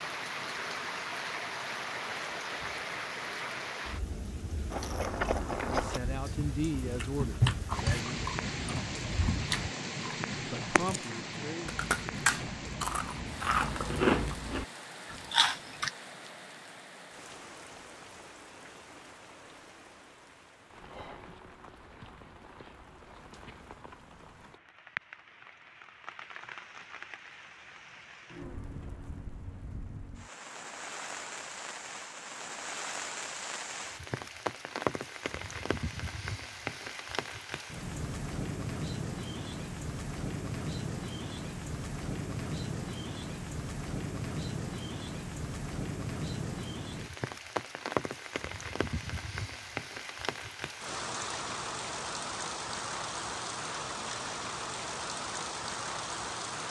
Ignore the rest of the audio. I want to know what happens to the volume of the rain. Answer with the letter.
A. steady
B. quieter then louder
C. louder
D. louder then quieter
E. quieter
B.